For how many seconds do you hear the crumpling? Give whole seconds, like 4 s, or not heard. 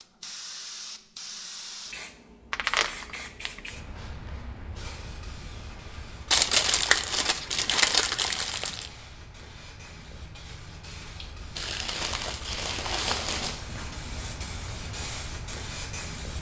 6 s.